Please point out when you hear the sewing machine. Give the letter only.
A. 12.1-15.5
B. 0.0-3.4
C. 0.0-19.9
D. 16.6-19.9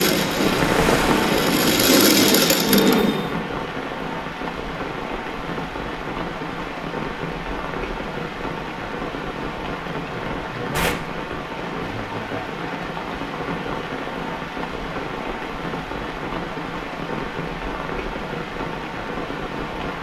B.